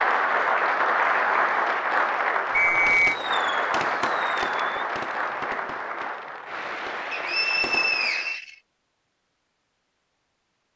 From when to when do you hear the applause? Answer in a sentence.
The applause can be heard from 0.0 to 8.4 s.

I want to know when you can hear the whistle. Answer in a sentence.
You can hear the whistle from 2.5 to 3.1 s and from 7.1 to 8.6 s.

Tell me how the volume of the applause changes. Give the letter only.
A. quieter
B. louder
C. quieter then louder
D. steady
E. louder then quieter
A.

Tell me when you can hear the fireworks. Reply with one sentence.
You can hear the fireworks from 2.9 to 8.0 s.